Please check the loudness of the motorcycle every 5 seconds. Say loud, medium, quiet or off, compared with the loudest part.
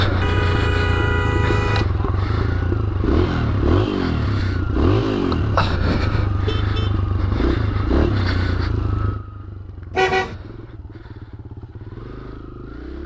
loud, loud, quiet.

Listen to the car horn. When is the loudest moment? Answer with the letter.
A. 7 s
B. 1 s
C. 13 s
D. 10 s
D.